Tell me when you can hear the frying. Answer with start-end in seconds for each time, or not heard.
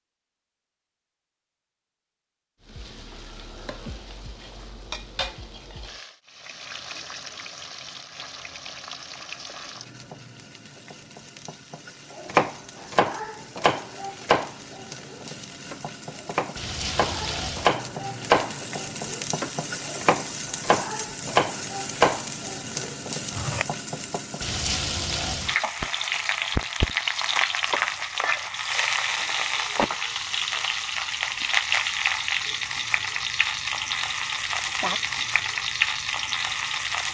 2.6-37.0.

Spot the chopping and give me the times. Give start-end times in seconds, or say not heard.
12.2-23.6.